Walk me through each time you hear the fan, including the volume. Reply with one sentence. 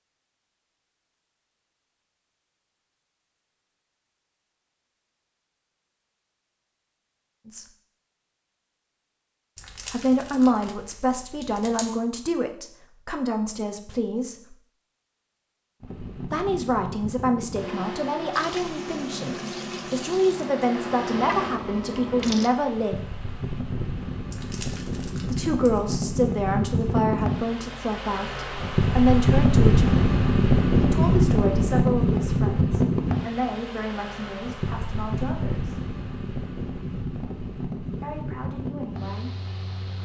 You can hear the fan from 15.8 to 39.9 s, getting louder then quieter.